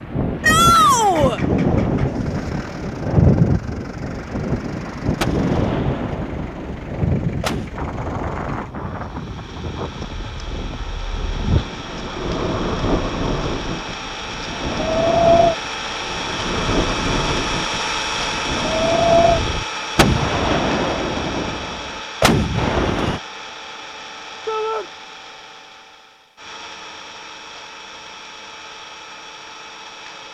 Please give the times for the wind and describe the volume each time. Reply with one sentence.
The wind can be heard from 0.0 to 19.6 s, getting quieter then louder.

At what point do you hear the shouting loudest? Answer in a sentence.
The loudest moment of the shouting is at 1 second.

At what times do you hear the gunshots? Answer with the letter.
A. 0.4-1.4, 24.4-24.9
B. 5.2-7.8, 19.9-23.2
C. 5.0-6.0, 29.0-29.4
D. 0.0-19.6
B.